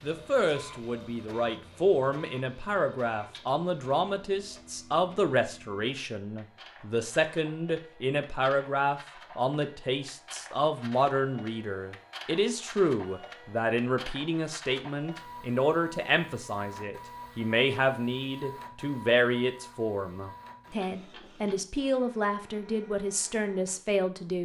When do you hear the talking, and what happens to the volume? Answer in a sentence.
You can hear the talking from 0.0 to 24.4 s, at a steady volume.